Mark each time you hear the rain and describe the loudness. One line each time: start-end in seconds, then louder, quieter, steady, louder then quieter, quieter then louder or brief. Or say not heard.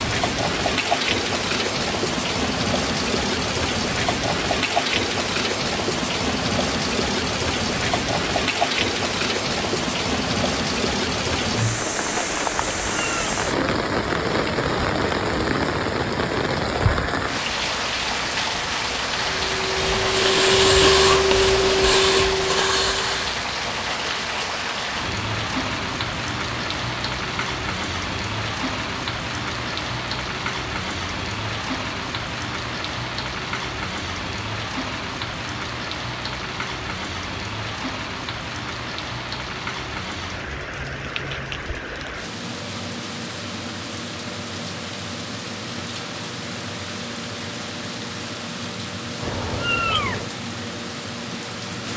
0.0-51.9 quieter.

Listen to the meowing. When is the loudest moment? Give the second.
50 s.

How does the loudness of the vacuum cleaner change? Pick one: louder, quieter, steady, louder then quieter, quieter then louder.
louder then quieter.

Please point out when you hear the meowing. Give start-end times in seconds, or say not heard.
12.6-13.3, 49.2-50.2.